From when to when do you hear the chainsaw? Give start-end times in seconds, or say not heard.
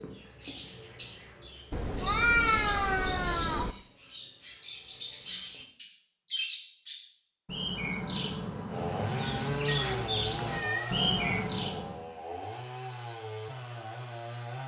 8.7-14.6.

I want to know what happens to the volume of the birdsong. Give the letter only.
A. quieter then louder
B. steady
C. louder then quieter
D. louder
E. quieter
D.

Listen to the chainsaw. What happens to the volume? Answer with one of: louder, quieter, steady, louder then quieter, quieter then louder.
quieter.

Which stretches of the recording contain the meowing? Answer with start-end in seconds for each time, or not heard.
1.7-3.8, 9.7-11.5.